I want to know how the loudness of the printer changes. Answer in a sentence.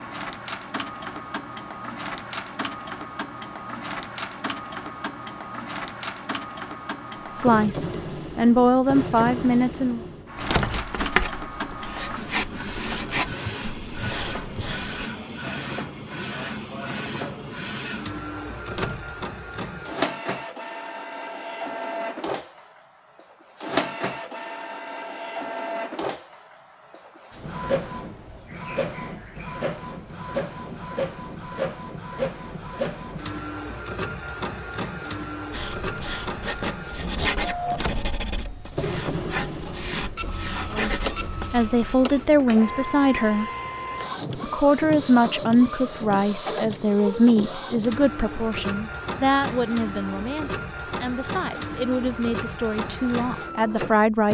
The loudness of the printer stays about the same.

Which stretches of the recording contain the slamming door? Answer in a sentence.
The slamming door can be heard from 10.3 to 10.9 s, from 18.6 to 19.1 s and from 37.6 to 38.2 s.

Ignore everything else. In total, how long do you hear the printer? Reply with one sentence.
The printer can be heard for 54 seconds in total.